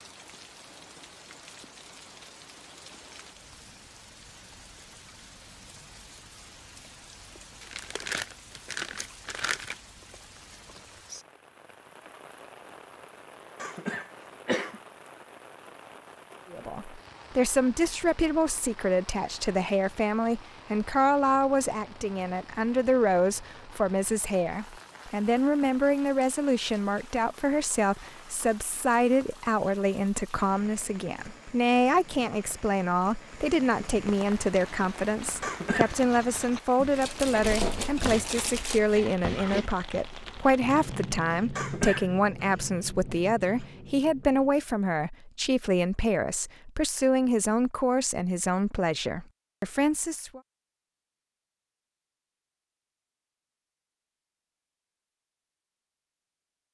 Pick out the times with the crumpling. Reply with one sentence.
The crumpling can be heard from 7.6 to 9.8 s and from 36.8 to 38.8 s.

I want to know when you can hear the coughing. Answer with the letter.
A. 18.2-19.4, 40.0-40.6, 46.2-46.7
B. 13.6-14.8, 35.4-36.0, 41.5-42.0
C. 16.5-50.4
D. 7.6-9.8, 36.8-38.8
B.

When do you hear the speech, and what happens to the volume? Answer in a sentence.
You can hear the speech from 16.5 to 50.4 s, at a steady volume.